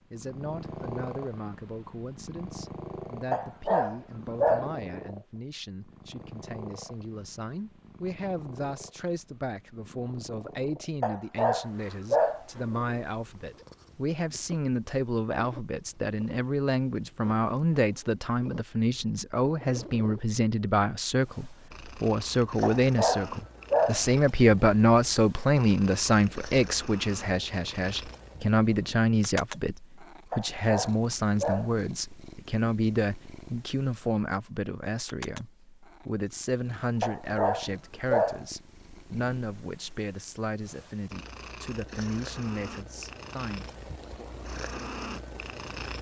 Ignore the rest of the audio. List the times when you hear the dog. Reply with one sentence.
The dog can be heard from 3.3 to 4.8 s, from 11.0 to 12.4 s, from 22.6 to 24.1 s, from 30.3 to 31.8 s and from 37.0 to 38.5 s.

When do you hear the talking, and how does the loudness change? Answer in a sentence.
The talking can be heard from 0.1 to 44.4 s, getting louder then quieter.